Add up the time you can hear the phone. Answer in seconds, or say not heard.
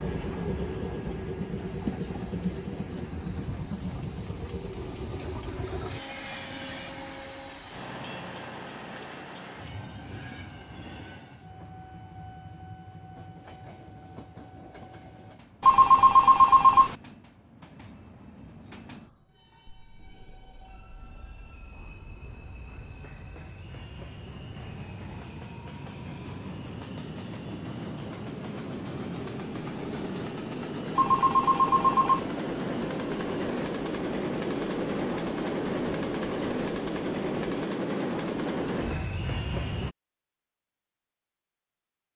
3 s.